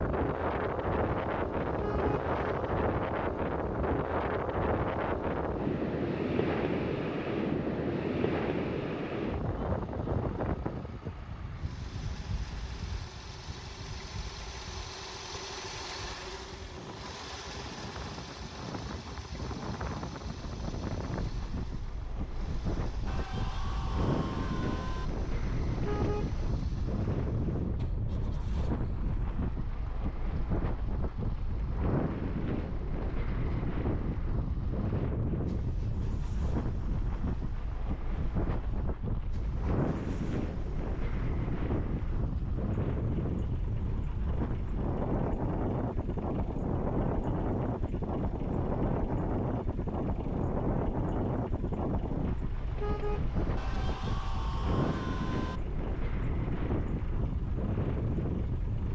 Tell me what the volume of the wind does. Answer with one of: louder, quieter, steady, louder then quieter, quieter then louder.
quieter then louder.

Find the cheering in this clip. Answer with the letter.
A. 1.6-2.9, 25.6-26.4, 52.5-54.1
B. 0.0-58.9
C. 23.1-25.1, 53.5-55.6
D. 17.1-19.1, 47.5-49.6
C.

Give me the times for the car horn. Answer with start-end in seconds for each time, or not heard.
1.6-2.9, 25.6-26.4, 52.5-54.1.